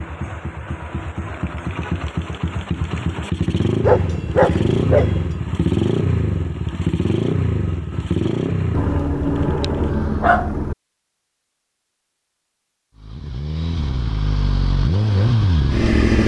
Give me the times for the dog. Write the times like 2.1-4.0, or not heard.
3.8-5.3, 8.7-10.8.